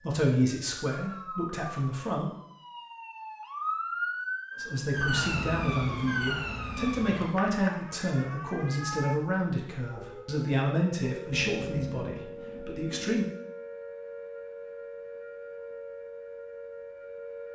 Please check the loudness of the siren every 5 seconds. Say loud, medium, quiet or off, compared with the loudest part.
loud, loud, medium, medium.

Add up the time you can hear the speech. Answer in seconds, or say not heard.
11 s.